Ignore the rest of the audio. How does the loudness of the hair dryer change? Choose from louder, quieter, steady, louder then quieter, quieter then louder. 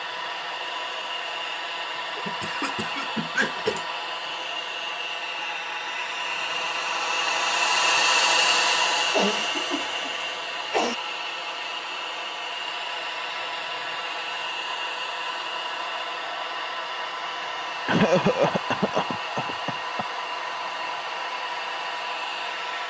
louder then quieter.